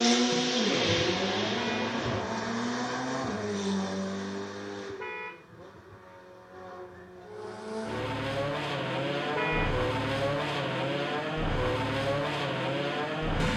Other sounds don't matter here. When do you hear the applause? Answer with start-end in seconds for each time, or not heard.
not heard.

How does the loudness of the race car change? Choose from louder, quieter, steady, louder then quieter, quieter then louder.
quieter then louder.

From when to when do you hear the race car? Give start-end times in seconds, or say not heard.
0.0-13.5.